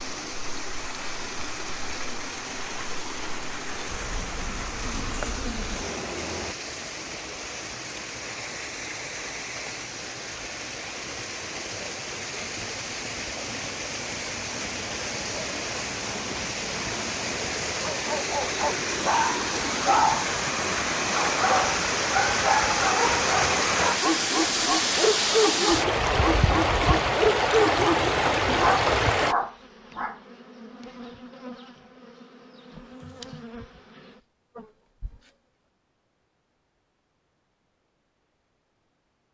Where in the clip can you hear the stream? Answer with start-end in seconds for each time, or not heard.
0.0-29.4.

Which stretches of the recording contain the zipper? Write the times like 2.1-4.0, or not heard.
not heard.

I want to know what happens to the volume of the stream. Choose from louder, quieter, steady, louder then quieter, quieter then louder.
louder.